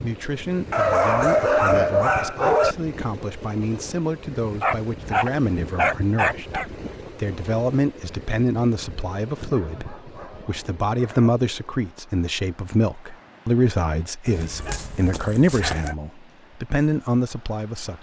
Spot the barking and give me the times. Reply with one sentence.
You can hear the barking from 0.7 to 2.8 s, from 4.6 to 6.7 s, from 9.4 to 11.3 s and from 14.2 to 15.9 s.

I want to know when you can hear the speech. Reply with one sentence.
You can hear the speech from 0.0 to 17.9 s.